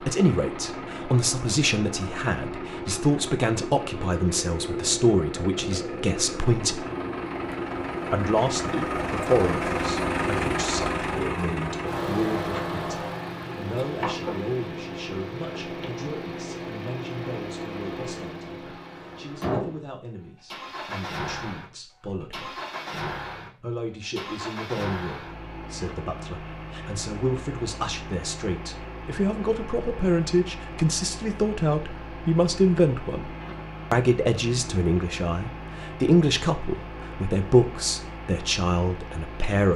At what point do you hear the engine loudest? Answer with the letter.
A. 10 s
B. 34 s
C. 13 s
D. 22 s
A.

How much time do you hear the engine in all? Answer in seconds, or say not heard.
40 s.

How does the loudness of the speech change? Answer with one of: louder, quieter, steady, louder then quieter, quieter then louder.
quieter then louder.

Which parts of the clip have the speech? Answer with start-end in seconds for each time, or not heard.
0.0-6.8, 8.1-22.6, 23.6-39.7.